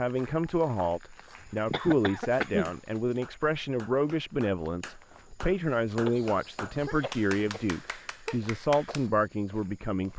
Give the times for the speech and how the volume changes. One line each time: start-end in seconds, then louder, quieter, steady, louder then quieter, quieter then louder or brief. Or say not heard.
0.0-10.1 steady.